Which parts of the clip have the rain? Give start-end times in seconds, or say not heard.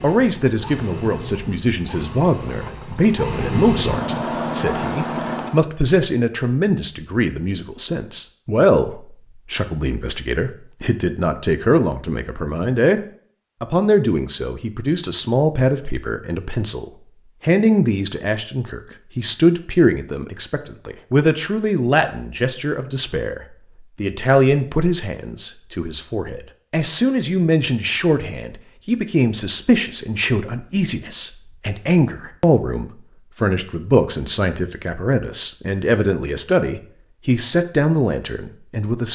not heard.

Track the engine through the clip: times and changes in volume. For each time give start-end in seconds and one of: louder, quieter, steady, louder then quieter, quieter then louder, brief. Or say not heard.
0.0-5.6 louder.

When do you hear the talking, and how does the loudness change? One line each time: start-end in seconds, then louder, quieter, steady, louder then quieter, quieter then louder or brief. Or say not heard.
0.0-13.0 steady
13.6-39.1 steady.